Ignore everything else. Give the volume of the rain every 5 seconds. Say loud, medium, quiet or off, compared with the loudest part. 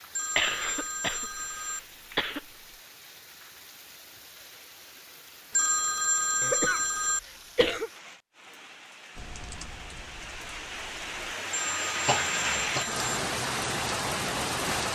quiet, quiet, loud.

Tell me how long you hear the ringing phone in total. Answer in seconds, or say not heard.
5 s.